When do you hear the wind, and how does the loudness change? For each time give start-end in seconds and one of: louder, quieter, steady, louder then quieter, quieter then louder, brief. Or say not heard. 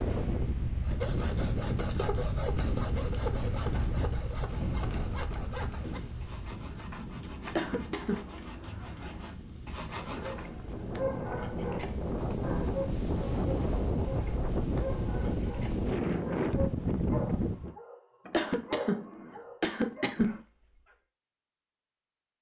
0.0-17.8 quieter then louder.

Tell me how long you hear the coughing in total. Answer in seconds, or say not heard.
3 s.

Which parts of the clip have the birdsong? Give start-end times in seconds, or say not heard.
not heard.